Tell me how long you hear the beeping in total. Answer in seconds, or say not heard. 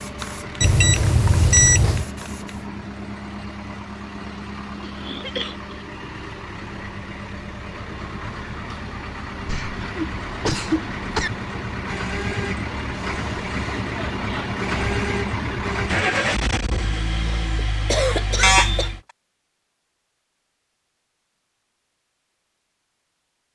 2 s.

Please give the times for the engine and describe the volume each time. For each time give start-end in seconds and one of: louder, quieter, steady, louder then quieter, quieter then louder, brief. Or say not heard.
0.0-19.0 louder.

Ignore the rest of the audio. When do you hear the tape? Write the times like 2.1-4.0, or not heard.
not heard.